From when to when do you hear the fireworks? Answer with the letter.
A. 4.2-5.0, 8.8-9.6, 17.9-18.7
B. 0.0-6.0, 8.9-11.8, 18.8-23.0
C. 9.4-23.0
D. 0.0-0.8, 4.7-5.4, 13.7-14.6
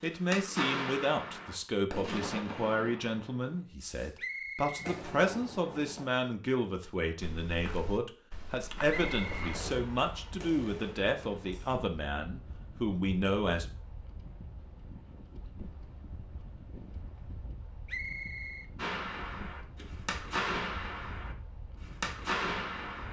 B.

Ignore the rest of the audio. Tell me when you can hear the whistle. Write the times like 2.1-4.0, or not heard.
4.2-5.0, 8.8-9.6, 17.9-18.7.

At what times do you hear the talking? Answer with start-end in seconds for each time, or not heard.
0.0-13.7.